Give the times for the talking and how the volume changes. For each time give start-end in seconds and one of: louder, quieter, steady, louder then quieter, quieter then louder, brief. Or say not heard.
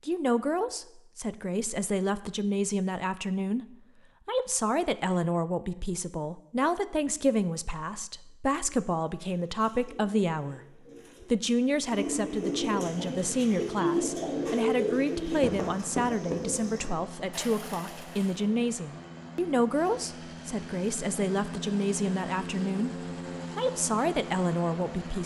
0.1-10.6 steady
11.2-25.2 steady.